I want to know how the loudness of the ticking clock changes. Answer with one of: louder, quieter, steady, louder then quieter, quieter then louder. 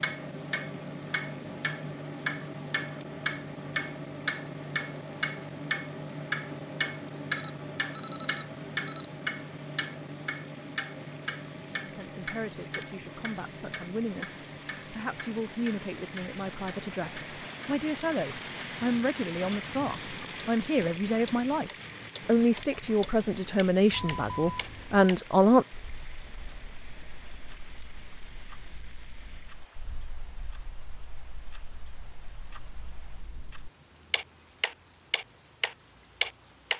quieter then louder.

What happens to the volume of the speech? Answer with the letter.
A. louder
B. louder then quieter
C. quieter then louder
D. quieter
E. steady
A.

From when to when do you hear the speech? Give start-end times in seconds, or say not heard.
11.8-25.6.